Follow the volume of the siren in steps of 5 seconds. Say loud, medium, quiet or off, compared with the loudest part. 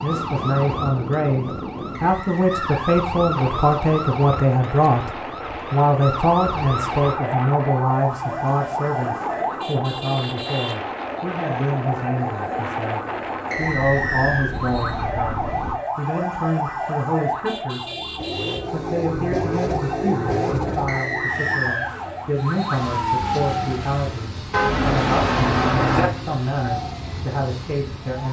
loud, loud, loud, loud, loud, medium.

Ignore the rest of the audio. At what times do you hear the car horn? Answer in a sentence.
You can hear the car horn from 24.5 to 26.1 s.